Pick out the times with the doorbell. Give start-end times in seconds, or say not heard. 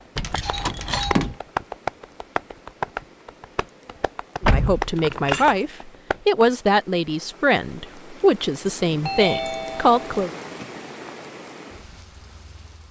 0.2-1.3, 9.0-10.0.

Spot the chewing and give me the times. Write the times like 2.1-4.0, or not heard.
not heard.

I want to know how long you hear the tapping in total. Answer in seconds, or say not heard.
6 s.